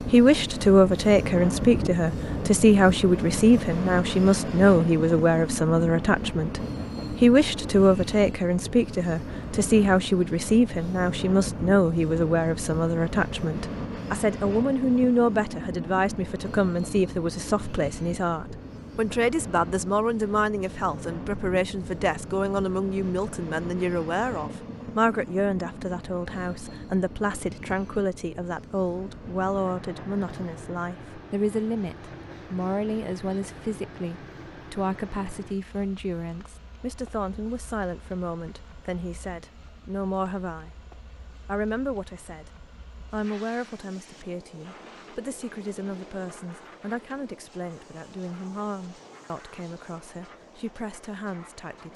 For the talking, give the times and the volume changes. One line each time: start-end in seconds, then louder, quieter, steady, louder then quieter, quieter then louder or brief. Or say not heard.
0.1-40.7 quieter
41.3-42.5 brief
43.1-51.9 steady.